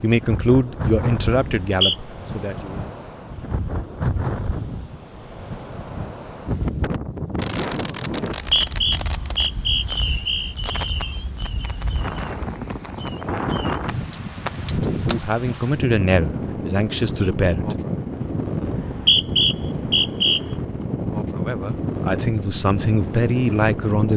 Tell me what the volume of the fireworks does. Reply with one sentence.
The loudness of the fireworks goes down, then up.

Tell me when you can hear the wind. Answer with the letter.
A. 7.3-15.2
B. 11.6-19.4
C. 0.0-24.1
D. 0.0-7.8
C.